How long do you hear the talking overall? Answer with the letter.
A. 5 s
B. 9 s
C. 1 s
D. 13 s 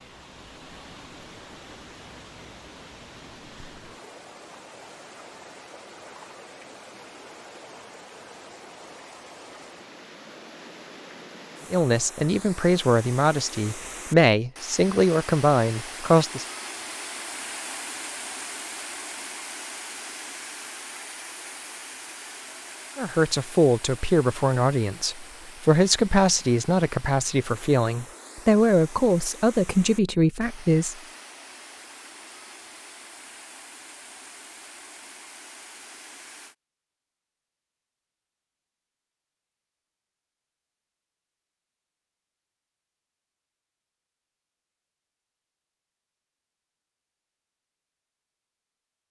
D.